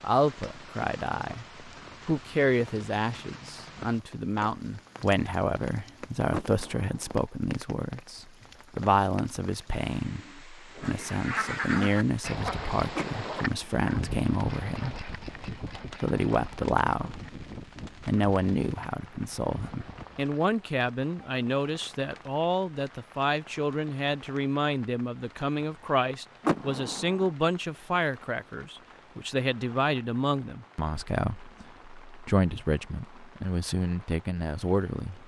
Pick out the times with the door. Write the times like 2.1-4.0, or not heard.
6.3-7.2, 12.9-13.8, 26.4-27.3.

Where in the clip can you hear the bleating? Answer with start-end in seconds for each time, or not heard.
not heard.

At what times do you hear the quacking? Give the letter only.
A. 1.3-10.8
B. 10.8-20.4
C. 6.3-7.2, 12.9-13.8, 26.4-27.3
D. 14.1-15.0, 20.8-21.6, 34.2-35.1
B.